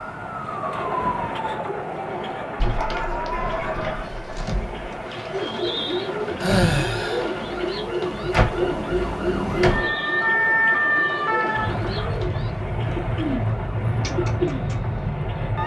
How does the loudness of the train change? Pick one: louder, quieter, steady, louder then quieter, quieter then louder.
steady.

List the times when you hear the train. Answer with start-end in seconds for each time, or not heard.
0.0-15.6.